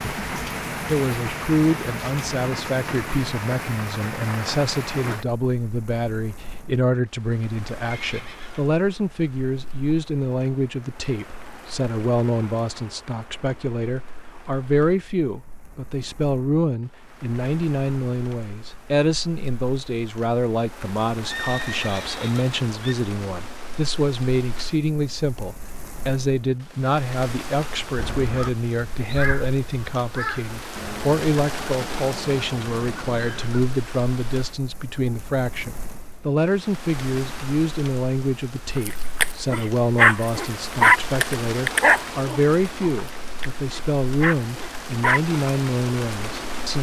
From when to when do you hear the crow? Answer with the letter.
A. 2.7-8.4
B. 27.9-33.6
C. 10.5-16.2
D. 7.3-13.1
B.